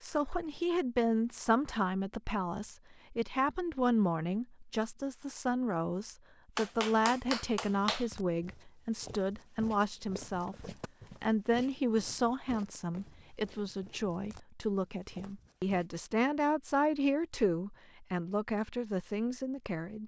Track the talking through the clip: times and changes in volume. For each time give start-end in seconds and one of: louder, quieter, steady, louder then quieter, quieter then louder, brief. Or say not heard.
0.0-20.0 steady.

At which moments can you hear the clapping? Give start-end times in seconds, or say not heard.
6.5-8.1.